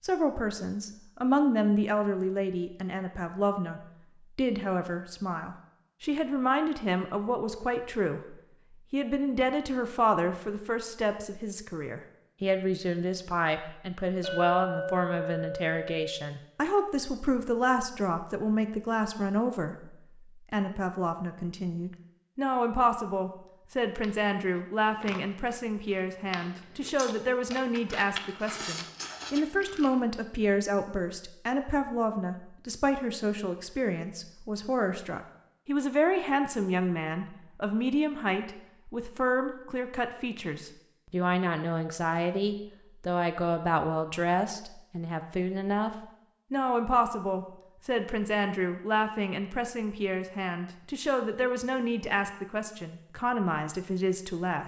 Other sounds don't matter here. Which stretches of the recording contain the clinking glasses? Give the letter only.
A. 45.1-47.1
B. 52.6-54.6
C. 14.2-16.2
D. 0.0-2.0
C.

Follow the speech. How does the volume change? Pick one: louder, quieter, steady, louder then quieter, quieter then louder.
steady.